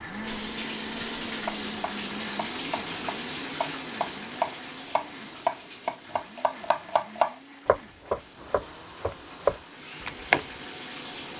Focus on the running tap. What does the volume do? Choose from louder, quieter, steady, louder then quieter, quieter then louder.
quieter then louder.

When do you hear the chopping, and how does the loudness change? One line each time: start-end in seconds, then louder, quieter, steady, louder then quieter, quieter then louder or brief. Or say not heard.
1.1-10.4 louder.